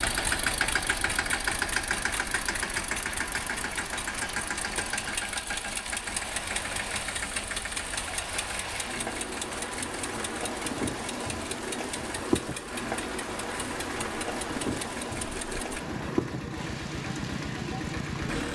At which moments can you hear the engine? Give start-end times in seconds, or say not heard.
0.0-18.4.